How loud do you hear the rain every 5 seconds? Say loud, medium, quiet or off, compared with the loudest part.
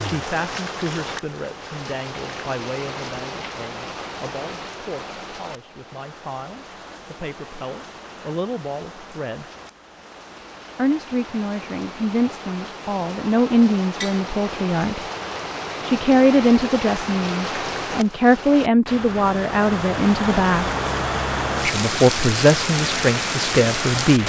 medium, quiet, medium, medium, loud.